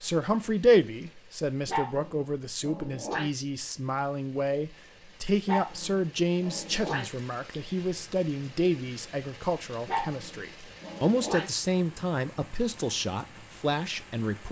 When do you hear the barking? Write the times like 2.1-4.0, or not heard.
1.6-3.3, 5.5-7.0, 9.8-11.5.